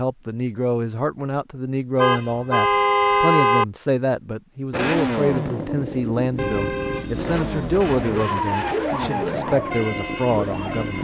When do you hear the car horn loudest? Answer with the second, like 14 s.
3 s.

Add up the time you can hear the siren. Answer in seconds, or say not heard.
3 s.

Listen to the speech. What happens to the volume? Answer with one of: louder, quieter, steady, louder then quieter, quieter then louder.
steady.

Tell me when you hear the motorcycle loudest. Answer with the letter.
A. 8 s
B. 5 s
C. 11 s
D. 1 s
B.